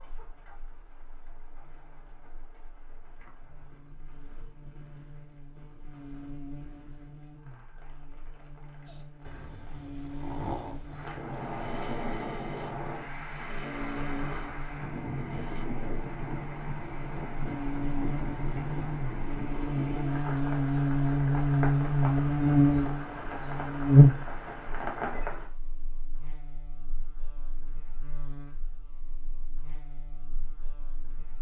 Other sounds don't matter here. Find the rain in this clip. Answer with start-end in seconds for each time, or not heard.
0.0-25.5.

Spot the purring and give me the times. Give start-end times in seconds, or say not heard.
not heard.